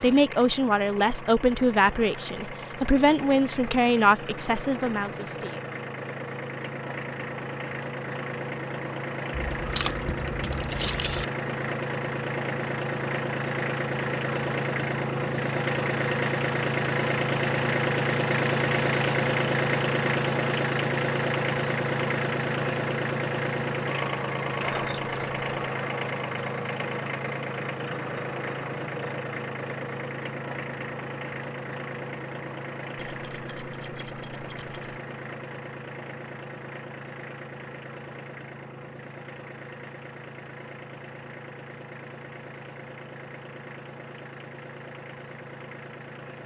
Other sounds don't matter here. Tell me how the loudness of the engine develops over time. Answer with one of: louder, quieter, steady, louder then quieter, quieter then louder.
louder then quieter.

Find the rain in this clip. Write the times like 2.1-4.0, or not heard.
not heard.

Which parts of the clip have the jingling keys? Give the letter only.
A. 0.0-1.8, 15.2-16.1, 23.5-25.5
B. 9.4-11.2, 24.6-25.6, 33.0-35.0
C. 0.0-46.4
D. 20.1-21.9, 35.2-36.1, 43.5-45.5
B.